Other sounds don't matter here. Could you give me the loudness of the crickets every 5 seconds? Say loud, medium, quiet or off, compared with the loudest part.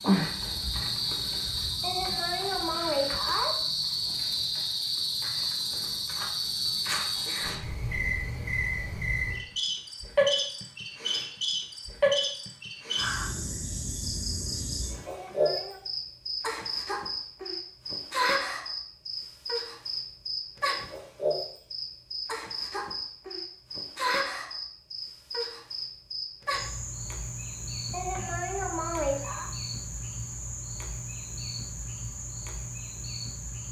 loud, loud, loud, loud, loud, medium, medium.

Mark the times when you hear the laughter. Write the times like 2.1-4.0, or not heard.
1.8-3.5, 15.1-15.8, 27.9-29.5.